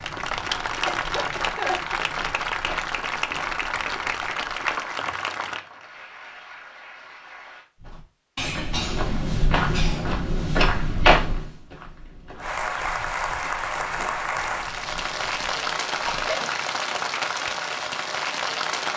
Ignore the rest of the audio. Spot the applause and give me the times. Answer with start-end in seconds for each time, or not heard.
0.0-7.7, 12.4-18.9.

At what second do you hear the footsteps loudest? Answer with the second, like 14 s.
11 s.